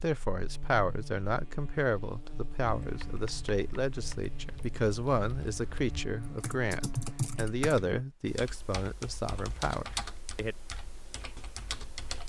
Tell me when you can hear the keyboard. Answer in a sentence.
You can hear the keyboard from 2.6 to 12.2 s.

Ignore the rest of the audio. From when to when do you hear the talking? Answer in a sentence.
The talking can be heard from 0.0 to 10.6 s.